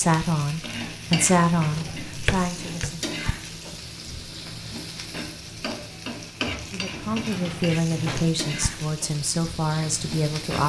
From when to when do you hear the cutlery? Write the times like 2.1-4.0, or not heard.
not heard.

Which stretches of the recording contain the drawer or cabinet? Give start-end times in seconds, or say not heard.
1.6-3.0, 6.9-8.4.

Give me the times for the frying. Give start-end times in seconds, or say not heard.
0.0-10.6.